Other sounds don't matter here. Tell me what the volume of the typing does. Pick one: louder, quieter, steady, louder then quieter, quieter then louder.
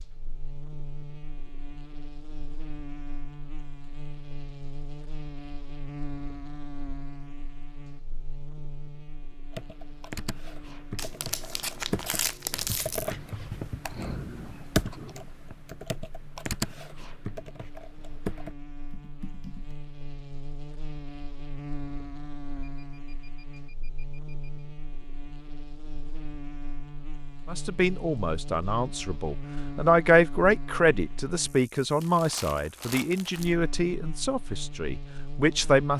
louder then quieter.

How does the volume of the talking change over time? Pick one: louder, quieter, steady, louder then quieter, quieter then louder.
louder then quieter.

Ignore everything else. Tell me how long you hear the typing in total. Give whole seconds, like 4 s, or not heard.
10 s.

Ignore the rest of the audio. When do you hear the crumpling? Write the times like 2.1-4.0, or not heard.
10.9-13.2, 32.0-33.5.